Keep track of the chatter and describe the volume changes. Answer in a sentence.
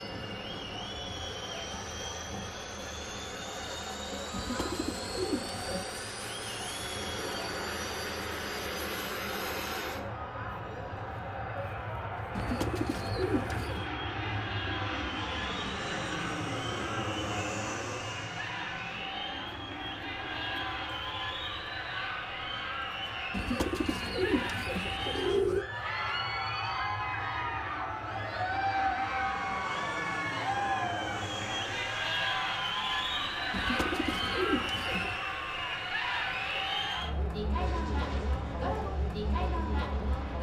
The volume of the chatter goes up.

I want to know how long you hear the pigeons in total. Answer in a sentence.
You can hear the pigeons for 7 seconds altogether.